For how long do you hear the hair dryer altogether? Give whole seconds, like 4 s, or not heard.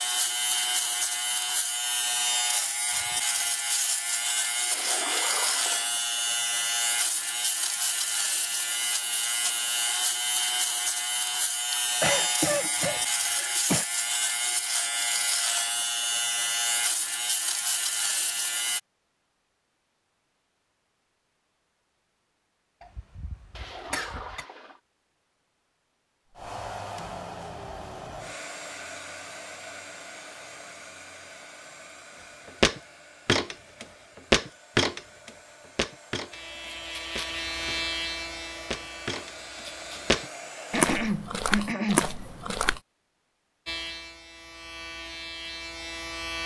15 s.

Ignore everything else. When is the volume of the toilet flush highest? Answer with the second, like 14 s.
5 s.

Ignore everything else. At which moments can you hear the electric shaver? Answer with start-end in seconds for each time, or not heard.
0.0-18.8, 36.3-40.2, 43.6-46.4.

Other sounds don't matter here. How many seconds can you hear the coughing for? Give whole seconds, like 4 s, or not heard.
5 s.